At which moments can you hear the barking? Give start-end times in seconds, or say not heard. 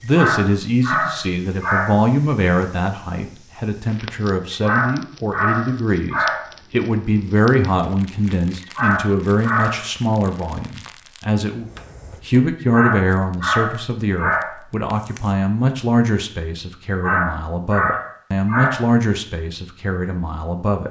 0.1-1.9, 4.6-6.5, 8.8-9.8, 12.7-14.5, 16.9-18.8.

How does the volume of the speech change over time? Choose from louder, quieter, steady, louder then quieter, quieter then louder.
steady.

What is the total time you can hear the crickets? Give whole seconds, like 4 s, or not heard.
not heard.